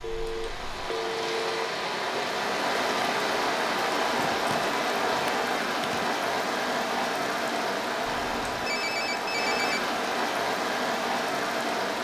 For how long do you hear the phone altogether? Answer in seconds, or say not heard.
5 s.